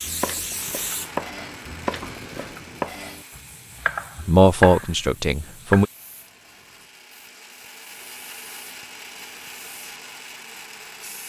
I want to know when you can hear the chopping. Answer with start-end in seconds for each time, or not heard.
0.0-5.8.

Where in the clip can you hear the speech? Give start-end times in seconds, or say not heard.
4.2-5.8.